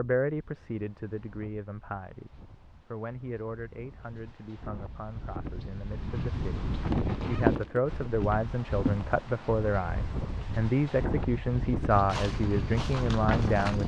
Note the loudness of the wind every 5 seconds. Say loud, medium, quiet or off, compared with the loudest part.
quiet, loud, loud.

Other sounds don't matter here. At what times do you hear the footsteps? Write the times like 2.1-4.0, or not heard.
6.3-9.1, 11.7-13.8.